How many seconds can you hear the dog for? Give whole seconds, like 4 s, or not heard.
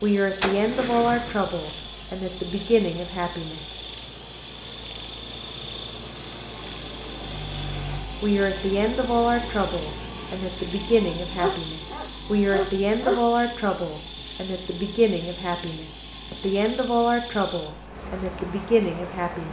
2 s.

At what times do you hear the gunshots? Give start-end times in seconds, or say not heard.
0.4-1.9.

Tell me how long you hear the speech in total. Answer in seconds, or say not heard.
15 s.